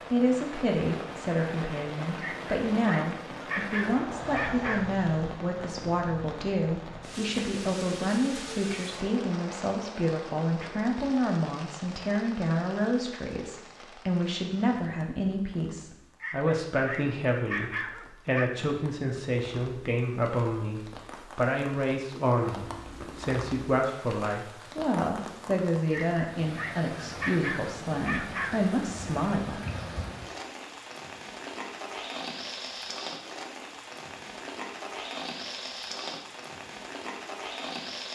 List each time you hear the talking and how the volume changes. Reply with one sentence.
The talking can be heard from 0.1 to 29.6 s, at a steady volume.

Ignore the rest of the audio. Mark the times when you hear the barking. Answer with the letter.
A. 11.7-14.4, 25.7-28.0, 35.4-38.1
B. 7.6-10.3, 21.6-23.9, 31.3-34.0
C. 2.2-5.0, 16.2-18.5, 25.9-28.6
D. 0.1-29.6
C.